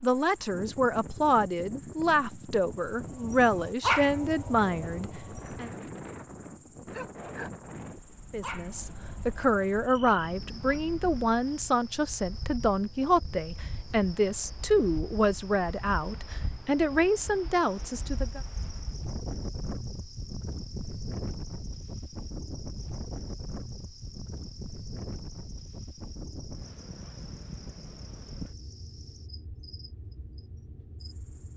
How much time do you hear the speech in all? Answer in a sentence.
You can hear the speech for 16 seconds altogether.